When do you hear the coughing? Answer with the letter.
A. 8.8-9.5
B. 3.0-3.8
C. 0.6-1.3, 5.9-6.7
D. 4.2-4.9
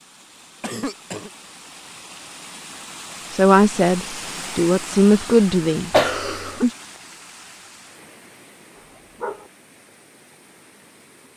C.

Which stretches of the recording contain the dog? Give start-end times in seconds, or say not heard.
8.8-9.5.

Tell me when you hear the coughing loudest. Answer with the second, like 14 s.
6 s.